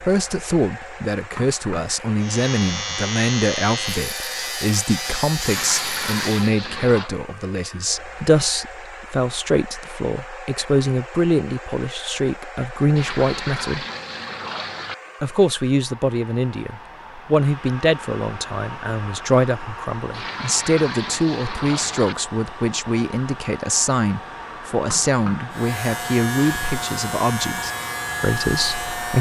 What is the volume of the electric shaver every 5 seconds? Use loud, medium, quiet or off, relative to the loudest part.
loud, loud, off, off, off, loud.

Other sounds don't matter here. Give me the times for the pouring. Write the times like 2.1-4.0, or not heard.
5.5-7.1, 12.9-14.9, 20.1-22.1.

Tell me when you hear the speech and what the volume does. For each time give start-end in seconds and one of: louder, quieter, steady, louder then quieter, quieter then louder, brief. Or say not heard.
0.0-13.8 steady
15.2-29.1 steady.